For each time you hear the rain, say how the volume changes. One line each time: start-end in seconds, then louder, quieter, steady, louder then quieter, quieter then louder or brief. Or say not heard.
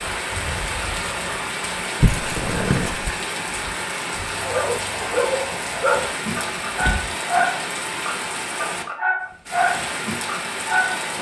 0.0-11.1 steady.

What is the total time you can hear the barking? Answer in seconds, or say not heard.
7 s.